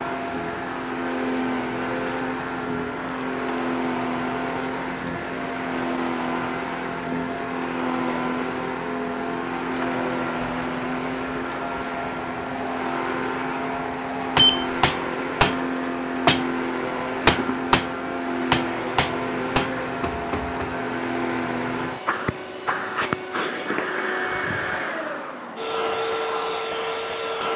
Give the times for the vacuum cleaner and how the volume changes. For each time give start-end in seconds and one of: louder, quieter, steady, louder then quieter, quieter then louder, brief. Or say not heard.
0.0-27.5 steady.